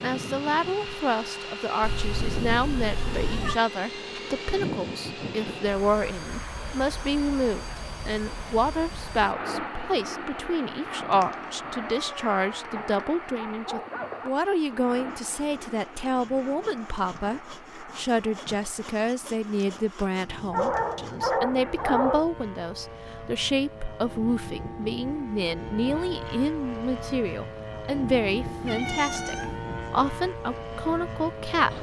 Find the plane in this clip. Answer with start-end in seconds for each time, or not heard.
0.0-31.7.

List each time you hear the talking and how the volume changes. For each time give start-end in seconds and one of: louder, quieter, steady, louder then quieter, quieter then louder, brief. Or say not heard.
0.0-31.7 steady.